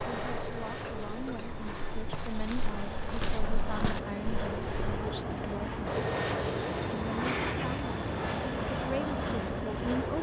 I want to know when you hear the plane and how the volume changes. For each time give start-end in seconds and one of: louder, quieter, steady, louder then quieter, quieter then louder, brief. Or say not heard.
0.0-10.1 louder.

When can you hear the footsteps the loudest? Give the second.
4 s.